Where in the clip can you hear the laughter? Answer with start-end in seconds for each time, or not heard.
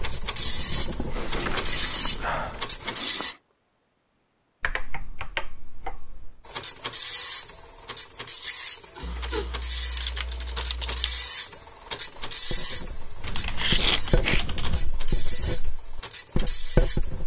not heard.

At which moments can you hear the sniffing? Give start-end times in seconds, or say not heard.
0.9-3.4, 8.9-9.5, 13.6-14.4.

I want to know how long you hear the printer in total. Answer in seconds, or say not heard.
14 s.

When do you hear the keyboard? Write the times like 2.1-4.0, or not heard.
0.3-2.7, 4.6-6.4, 9.0-11.3, 13.2-14.8.